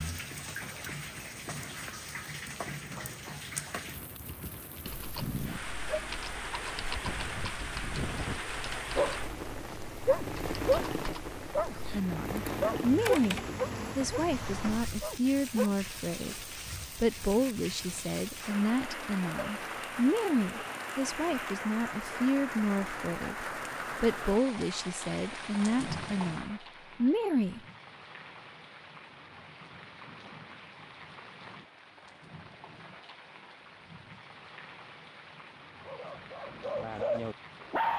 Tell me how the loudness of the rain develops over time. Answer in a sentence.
The loudness of the rain goes down.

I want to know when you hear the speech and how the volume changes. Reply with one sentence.
You can hear the speech from 11.9 to 27.6 s, at a steady volume.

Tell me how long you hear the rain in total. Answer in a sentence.
You can hear the rain for 38 seconds altogether.